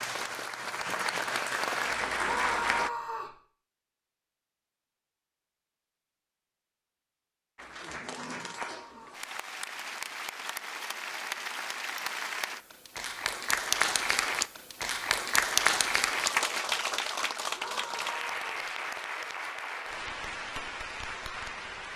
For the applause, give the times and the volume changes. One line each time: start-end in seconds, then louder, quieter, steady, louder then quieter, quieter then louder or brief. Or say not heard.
0.0-2.9 brief
7.5-21.9 louder then quieter.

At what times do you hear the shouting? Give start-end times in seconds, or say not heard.
2.1-3.4, 8.1-9.2, 17.5-18.7.